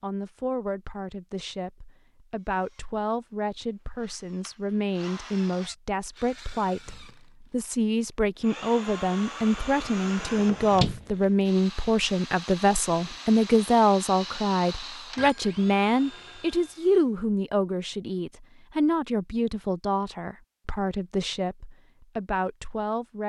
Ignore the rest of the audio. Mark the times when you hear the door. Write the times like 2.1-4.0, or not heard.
10.3-11.1.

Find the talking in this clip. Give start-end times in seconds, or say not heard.
0.0-23.2.